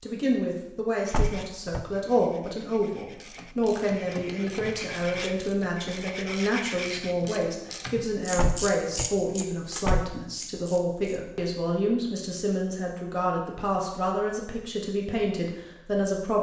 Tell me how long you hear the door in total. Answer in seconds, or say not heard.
3 s.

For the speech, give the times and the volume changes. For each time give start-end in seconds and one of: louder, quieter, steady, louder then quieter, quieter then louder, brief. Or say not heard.
0.0-16.3 steady.